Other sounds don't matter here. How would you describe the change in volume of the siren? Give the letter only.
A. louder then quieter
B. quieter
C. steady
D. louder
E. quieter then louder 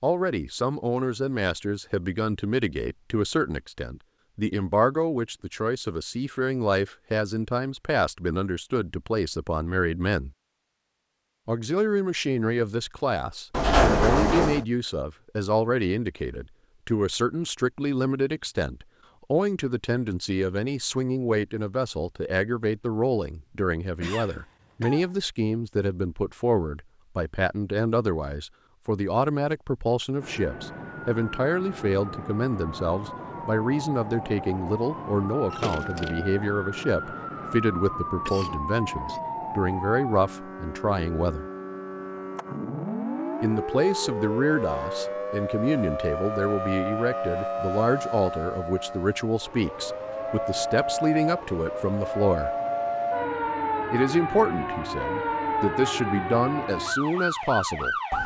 D.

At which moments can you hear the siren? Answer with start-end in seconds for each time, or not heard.
30.2-58.2.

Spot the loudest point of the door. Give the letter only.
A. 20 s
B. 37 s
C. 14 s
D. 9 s
C.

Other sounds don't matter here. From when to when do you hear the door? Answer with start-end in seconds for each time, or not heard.
13.5-14.7, 35.5-36.2.